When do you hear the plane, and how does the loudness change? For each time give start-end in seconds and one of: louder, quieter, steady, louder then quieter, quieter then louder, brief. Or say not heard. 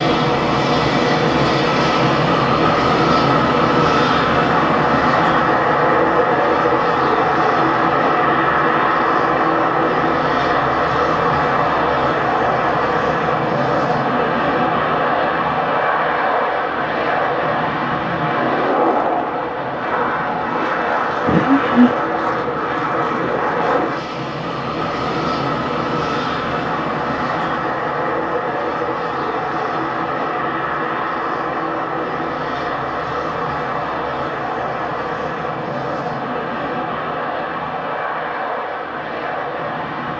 0.0-40.1 quieter.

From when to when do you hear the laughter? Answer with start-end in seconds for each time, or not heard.
21.2-21.9.